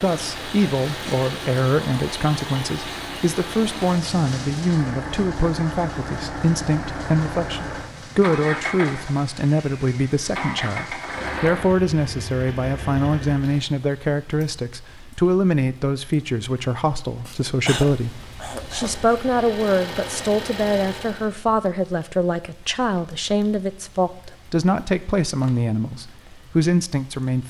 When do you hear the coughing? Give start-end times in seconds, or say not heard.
17.2-18.9.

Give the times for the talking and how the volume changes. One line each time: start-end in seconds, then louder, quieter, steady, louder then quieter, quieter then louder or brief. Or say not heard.
0.0-27.4 steady.